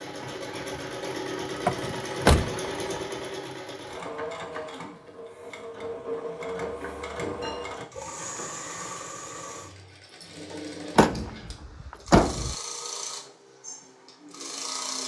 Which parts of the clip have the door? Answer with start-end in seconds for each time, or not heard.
1.6-3.0, 10.9-12.6.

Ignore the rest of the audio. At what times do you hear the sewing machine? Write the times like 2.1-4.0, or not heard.
0.0-15.0.